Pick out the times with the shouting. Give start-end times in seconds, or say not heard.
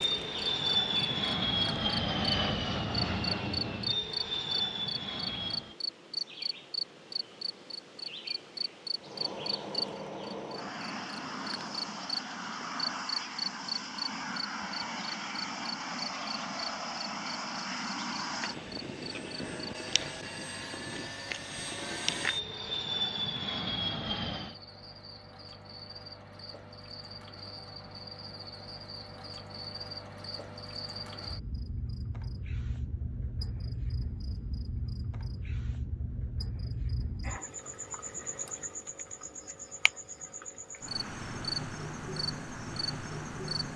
not heard.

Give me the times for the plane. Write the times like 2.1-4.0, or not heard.
0.0-5.8, 8.9-24.6.